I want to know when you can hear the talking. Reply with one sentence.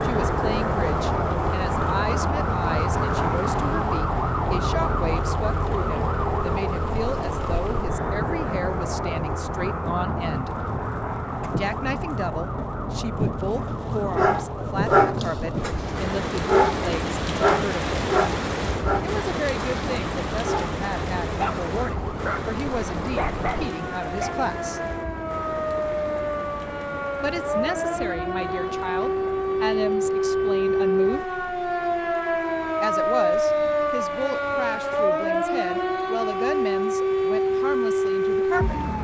You can hear the talking from 0.0 to 10.5 s, from 11.6 to 17.9 s, from 19.0 to 24.8 s, from 27.2 to 31.2 s and from 32.8 to 38.8 s.